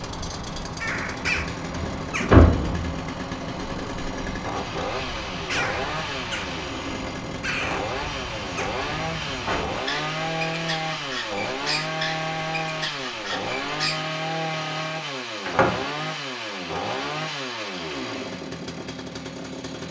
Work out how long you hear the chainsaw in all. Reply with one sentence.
You can hear the chainsaw for 20 seconds altogether.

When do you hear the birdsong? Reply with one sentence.
You can hear the birdsong from 0.0 to 14.0 s.